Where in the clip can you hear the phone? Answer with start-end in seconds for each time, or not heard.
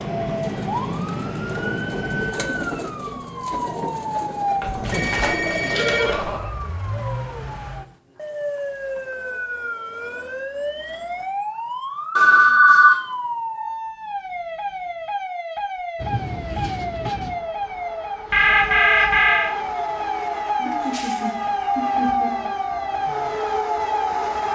4.6-6.3, 12.2-12.9, 18.3-19.6.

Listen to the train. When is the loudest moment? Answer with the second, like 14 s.
22 s.